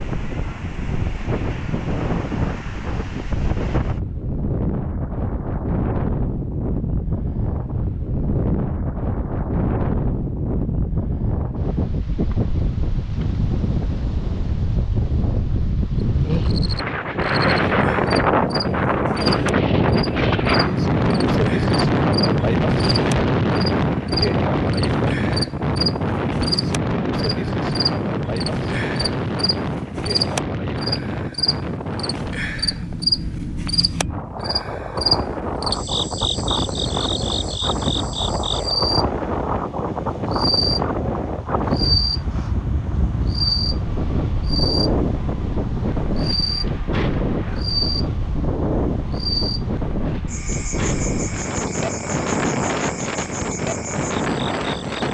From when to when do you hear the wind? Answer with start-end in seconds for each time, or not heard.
0.0-55.0.